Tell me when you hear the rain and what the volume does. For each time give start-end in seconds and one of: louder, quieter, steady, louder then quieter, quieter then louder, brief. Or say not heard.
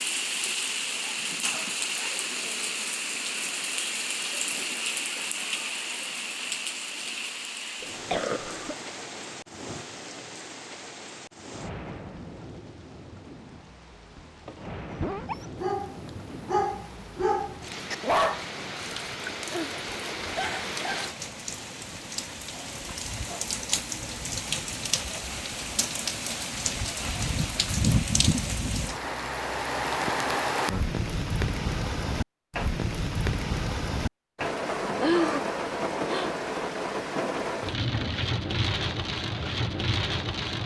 0.0-40.6 quieter then louder.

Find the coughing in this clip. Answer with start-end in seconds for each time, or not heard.
7.8-8.8, 34.8-35.4.